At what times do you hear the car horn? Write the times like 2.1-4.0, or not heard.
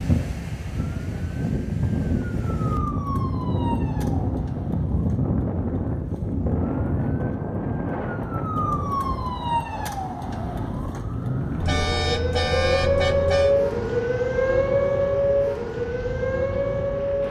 11.6-13.6.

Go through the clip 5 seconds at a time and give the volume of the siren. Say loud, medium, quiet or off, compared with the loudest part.
quiet, medium, loud, loud.